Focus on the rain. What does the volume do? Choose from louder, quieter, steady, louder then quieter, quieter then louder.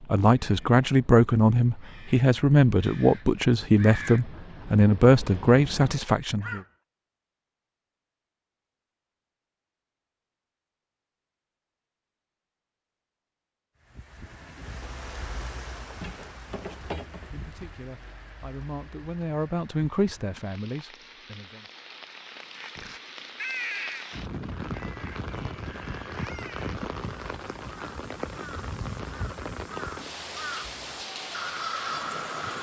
quieter then louder.